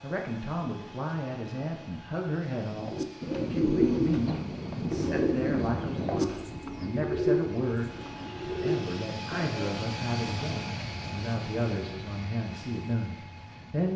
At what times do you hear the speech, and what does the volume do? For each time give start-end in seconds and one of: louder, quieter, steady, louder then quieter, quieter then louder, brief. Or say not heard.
0.0-13.9 steady.